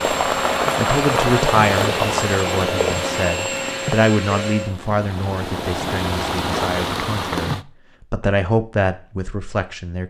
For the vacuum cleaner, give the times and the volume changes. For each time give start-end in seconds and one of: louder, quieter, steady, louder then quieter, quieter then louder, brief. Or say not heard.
0.0-4.8 steady.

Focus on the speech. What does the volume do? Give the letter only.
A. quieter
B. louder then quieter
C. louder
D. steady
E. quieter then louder
E.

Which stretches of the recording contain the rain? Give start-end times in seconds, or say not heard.
0.0-7.7.